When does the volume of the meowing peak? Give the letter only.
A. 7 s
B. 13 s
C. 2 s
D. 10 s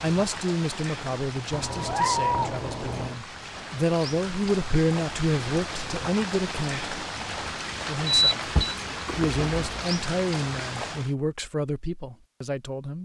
C.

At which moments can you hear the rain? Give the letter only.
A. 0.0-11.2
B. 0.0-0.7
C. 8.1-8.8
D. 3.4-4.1
A.